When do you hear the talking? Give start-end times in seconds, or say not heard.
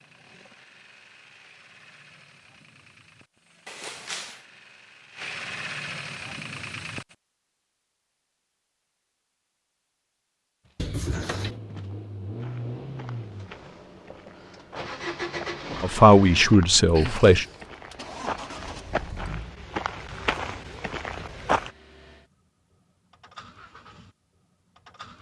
15.8-17.4.